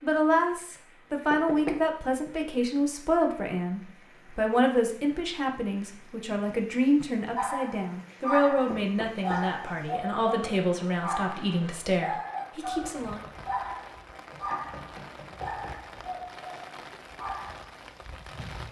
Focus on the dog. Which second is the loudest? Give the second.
8 s.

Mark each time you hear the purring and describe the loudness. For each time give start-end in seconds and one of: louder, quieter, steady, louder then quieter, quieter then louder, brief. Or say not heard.
not heard.